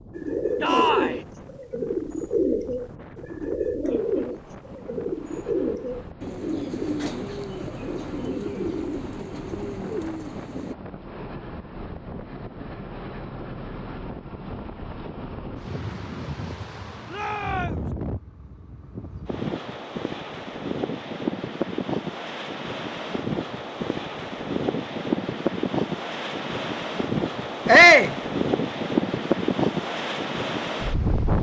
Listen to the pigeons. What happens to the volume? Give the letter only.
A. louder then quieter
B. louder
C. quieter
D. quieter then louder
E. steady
C.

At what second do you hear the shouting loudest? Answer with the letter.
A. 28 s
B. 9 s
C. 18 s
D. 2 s
A.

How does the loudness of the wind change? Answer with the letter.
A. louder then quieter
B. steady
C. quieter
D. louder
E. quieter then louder
D.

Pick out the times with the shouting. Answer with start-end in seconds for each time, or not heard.
0.6-1.2, 17.1-17.9, 27.6-28.1.